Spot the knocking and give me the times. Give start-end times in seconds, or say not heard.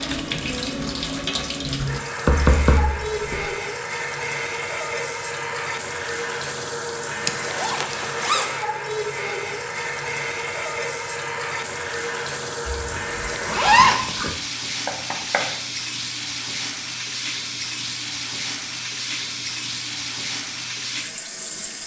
2.2-3.5, 14.8-15.5.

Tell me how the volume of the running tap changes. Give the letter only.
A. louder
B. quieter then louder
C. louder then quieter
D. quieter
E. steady
E.